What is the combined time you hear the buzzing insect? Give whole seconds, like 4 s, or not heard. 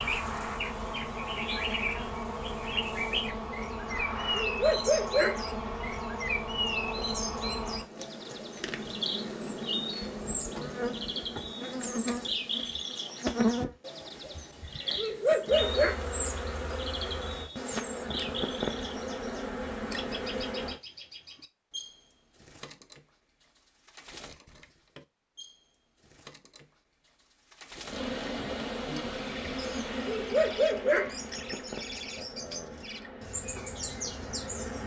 28 s.